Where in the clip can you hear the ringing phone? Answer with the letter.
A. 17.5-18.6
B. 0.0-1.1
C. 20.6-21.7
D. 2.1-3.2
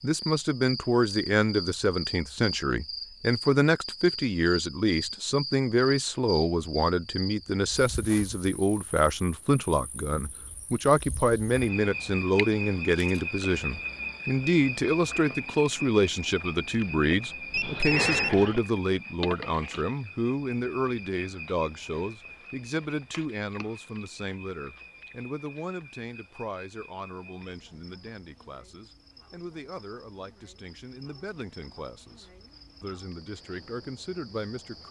A.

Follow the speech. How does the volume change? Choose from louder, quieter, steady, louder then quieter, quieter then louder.
quieter.